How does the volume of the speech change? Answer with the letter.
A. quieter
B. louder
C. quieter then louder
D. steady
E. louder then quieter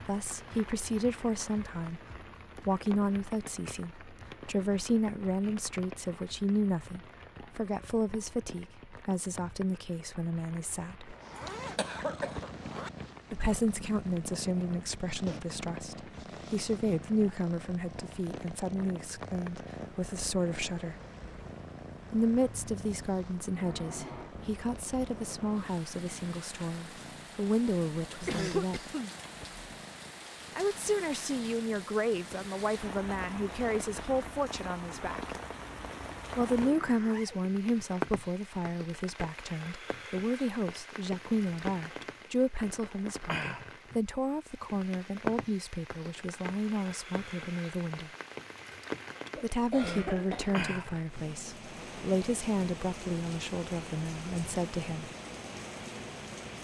D.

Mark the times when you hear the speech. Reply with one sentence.
The speech can be heard from 0.1 to 11.2 s, from 13.3 to 20.9 s, from 22.1 to 28.8 s, from 30.6 to 35.4 s, from 36.4 to 48.1 s and from 49.4 to 55.1 s.